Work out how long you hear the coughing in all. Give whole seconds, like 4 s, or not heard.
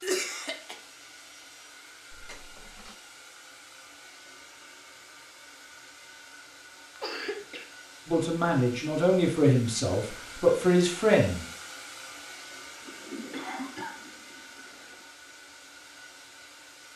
2 s.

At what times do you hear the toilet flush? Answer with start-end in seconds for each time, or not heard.
2.1-3.0, 12.8-15.1.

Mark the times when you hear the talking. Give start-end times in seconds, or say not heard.
8.1-11.4.